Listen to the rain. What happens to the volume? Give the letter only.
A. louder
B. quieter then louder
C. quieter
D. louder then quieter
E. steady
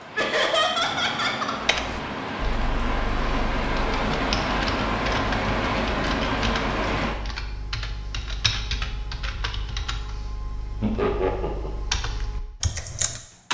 A.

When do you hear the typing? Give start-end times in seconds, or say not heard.
1.6-13.4.